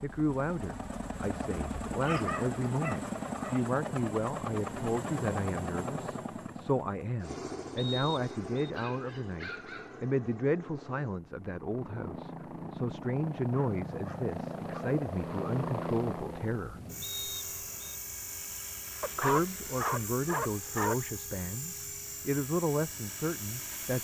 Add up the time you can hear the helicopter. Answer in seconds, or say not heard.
24 s.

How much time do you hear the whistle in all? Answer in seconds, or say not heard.
2 s.